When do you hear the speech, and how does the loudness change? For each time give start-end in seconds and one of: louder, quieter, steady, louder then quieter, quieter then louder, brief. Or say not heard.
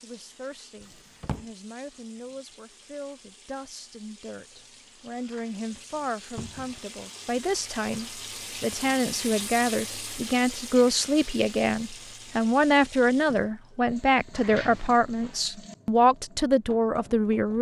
0.0-17.5 louder.